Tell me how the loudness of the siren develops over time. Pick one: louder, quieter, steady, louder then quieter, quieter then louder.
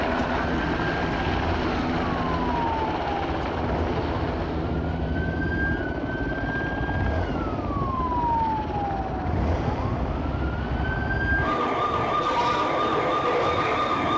louder.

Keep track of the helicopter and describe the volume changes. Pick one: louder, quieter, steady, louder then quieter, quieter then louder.
quieter.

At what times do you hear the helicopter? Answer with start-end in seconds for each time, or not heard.
0.0-14.1.